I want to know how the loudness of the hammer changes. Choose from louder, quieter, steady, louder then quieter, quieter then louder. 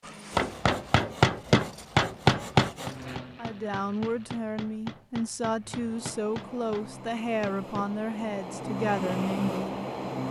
quieter.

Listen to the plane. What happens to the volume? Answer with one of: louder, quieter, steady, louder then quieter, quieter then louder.
quieter then louder.